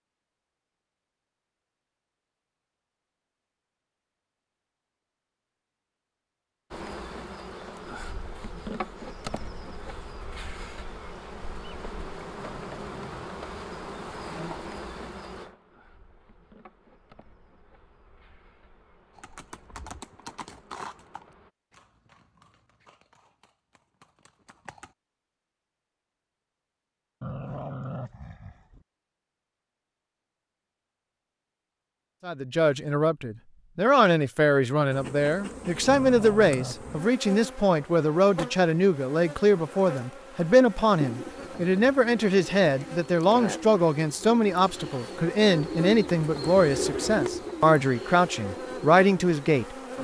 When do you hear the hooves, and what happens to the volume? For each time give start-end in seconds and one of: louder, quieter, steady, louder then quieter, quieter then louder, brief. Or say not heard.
19.1-24.9 quieter.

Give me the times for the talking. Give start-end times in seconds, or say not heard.
32.2-49.8.